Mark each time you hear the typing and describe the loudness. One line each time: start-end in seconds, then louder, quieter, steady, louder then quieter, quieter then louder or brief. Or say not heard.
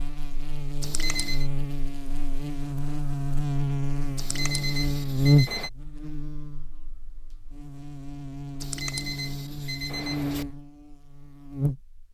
not heard.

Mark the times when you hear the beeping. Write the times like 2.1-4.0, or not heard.
0.8-1.5, 4.2-5.7, 8.6-10.4.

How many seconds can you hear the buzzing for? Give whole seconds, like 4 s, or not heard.
12 s.